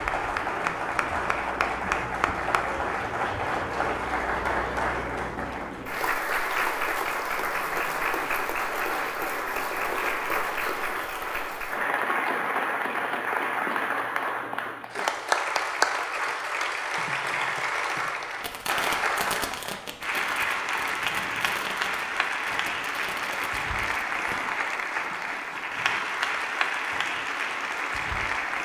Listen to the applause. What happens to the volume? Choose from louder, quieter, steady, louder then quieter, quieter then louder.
steady.